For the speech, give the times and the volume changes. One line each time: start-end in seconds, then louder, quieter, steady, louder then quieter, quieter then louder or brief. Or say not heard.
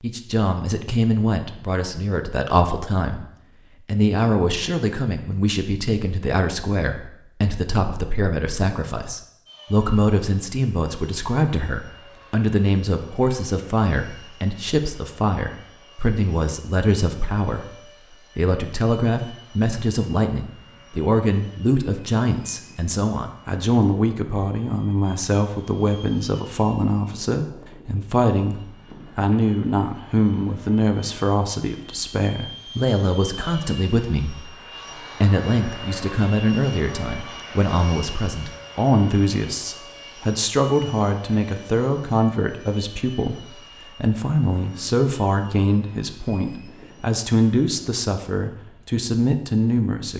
0.0-50.1 steady.